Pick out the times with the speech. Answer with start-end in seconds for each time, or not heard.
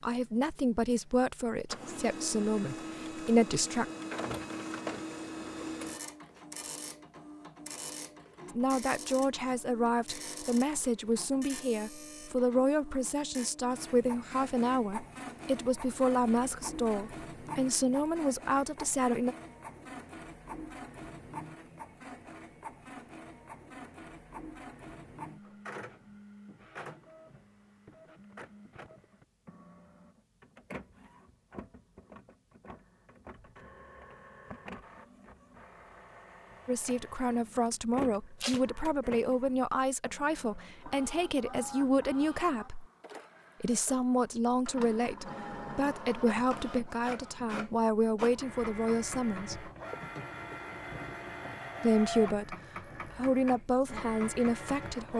0.0-3.9, 8.5-19.4, 36.6-42.9, 43.6-49.7, 51.8-55.1.